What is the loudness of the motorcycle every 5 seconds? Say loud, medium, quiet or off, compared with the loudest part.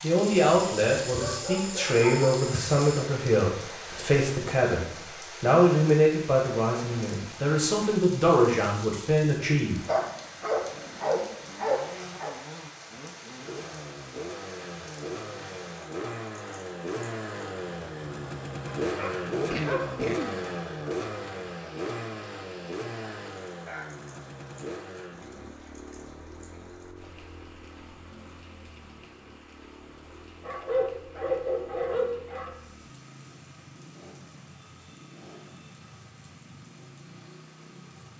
off, off, medium, loud, loud, quiet, quiet, quiet.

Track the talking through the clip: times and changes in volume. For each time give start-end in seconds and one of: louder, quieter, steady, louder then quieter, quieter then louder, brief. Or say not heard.
0.0-9.8 steady.